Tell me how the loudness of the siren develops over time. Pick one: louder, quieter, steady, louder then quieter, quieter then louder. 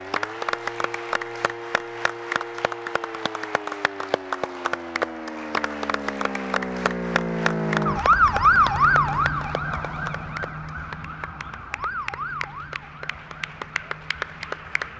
louder then quieter.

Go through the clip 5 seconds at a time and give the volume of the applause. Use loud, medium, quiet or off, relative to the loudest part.
loud, loud, medium.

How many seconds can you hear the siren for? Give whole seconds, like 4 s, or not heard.
15 s.